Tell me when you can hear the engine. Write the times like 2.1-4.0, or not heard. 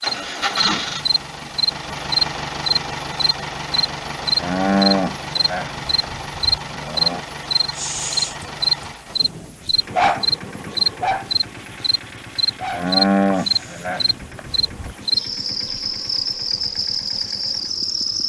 0.0-18.2.